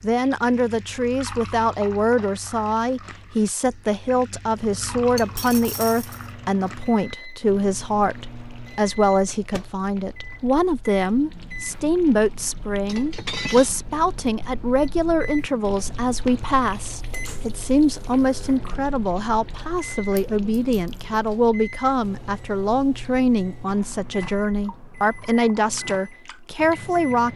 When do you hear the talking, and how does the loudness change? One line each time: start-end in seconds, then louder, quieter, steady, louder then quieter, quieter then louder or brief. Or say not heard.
0.0-27.3 steady.